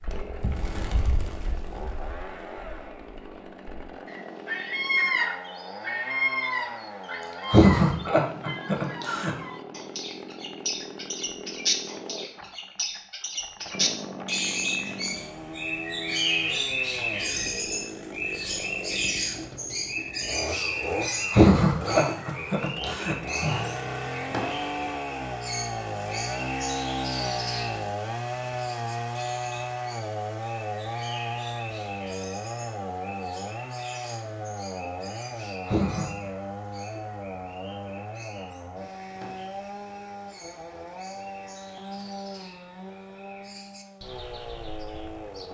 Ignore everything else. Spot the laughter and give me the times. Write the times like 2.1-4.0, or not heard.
7.5-9.3, 21.3-23.6, 35.6-36.2.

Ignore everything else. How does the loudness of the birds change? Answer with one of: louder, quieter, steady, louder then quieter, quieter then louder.
quieter.